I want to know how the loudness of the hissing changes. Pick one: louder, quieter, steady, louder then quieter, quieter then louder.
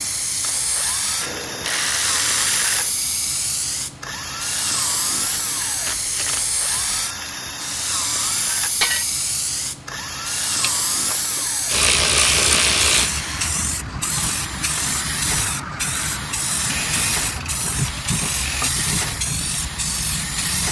steady.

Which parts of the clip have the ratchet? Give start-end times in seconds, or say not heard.
1.2-2.9, 5.4-7.0, 10.6-13.1, 16.6-18.7.